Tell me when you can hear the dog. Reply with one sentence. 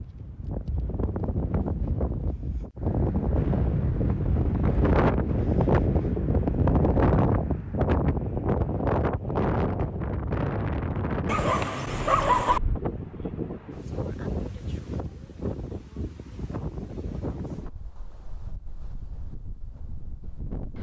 You can hear the dog from 11.2 to 12.6 s.